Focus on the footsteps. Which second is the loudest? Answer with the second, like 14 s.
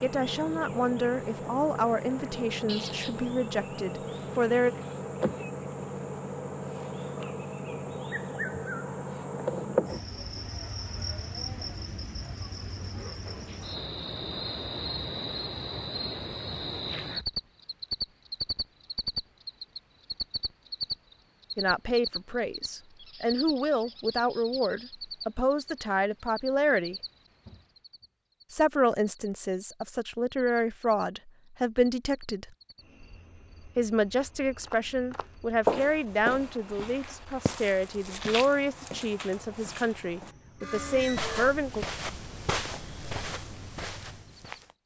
36 s.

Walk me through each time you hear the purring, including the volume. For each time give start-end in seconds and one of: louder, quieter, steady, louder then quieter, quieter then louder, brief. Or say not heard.
not heard.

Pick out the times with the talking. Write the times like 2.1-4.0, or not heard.
0.0-4.8, 21.6-26.9, 28.5-32.5, 33.8-41.9.